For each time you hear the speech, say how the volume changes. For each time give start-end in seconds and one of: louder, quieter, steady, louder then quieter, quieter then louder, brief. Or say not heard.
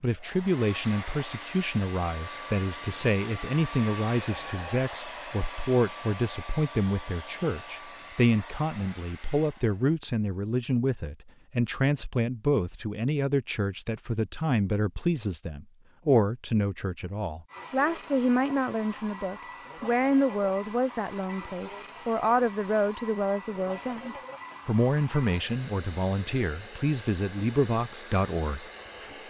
0.0-28.6 steady.